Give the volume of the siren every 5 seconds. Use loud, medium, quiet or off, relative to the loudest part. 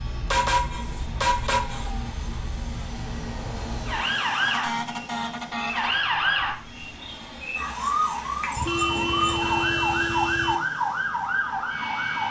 medium, loud, loud.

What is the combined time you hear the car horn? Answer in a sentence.
The car horn can be heard for 5 seconds in total.